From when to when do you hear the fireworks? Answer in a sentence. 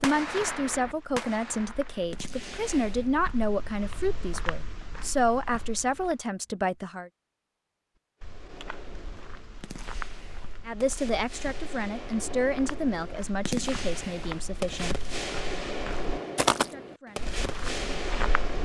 You can hear the fireworks from 0.0 to 3.1 s and from 8.2 to 18.6 s.